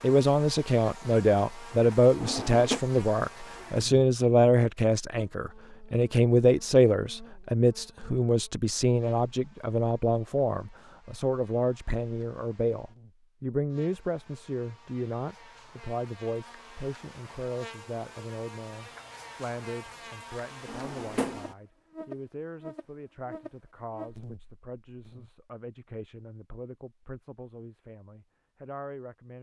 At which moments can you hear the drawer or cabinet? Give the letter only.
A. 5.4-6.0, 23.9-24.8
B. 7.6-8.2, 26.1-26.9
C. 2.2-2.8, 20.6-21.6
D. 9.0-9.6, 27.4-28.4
C.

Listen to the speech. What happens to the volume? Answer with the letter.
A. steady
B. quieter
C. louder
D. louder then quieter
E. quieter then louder
B.